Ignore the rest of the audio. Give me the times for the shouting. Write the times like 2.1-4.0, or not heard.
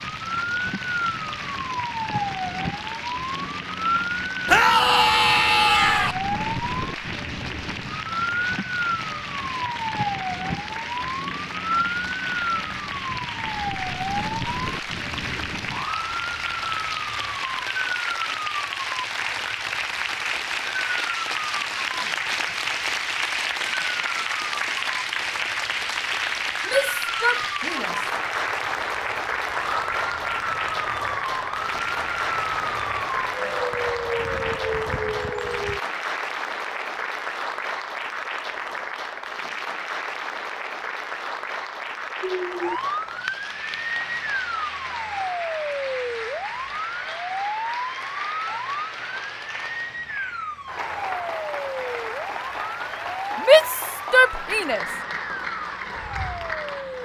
4.5-6.2, 26.6-27.9, 53.5-54.9.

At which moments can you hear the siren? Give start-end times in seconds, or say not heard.
0.0-35.8, 42.2-56.9.